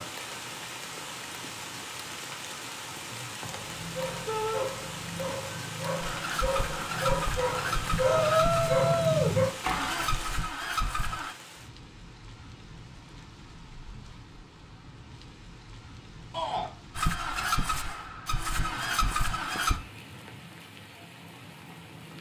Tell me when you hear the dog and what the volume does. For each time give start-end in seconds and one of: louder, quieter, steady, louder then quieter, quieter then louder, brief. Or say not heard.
3.5-9.5 louder.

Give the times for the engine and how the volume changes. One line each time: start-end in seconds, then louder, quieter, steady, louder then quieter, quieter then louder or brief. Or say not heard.
6.0-11.3 steady
16.9-19.8 brief.